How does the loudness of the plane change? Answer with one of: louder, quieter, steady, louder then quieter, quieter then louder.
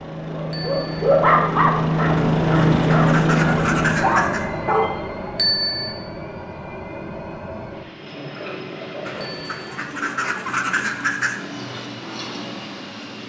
quieter.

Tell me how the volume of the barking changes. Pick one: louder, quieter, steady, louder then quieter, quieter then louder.
quieter then louder.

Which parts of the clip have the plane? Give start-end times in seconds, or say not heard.
0.0-13.2.